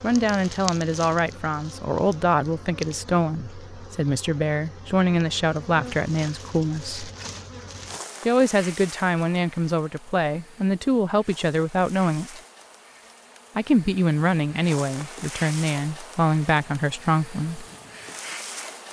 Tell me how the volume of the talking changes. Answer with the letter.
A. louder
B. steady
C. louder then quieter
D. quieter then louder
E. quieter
B.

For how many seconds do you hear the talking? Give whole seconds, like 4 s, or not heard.
15 s.